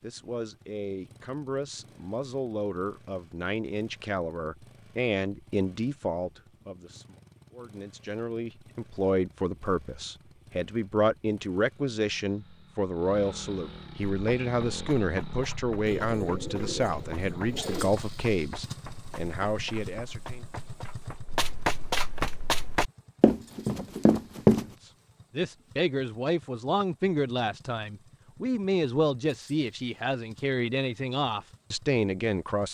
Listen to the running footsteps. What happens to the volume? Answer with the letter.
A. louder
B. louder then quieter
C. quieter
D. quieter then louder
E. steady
A.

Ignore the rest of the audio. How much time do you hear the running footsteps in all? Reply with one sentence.
The running footsteps can be heard for 11 seconds in total.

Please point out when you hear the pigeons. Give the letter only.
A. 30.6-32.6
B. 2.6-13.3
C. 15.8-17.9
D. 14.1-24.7
C.